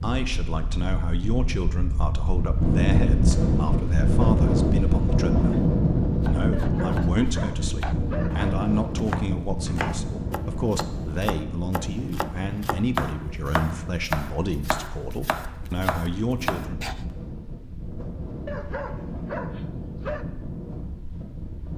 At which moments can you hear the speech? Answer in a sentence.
You can hear the speech from 0.0 to 5.7 s and from 6.2 to 16.9 s.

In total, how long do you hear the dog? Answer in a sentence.
The dog can be heard for 4 seconds in total.